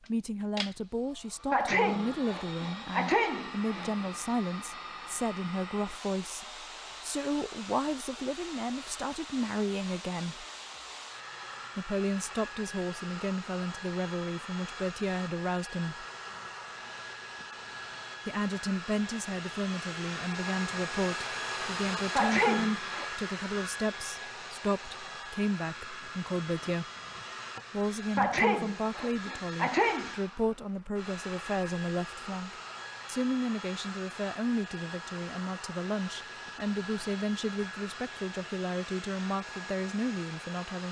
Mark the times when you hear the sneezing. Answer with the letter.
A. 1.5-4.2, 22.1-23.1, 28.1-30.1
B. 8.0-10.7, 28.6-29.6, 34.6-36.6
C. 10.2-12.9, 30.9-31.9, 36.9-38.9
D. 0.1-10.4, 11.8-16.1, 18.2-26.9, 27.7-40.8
A.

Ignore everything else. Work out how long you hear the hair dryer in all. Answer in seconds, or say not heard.
41 s.